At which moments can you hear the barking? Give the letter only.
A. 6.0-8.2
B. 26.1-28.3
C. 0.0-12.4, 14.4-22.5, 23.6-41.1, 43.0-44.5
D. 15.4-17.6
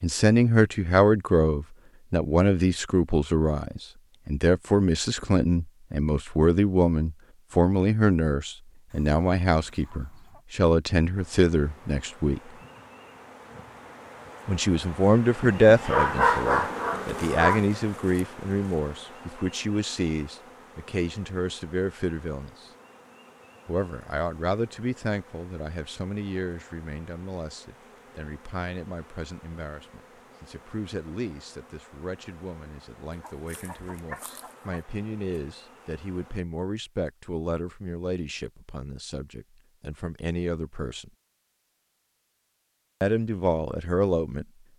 D.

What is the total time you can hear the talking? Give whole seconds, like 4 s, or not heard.
39 s.